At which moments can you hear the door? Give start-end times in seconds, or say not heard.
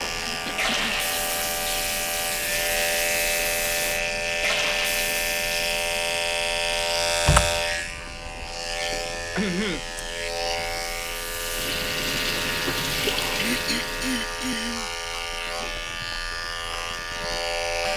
7.2-8.4.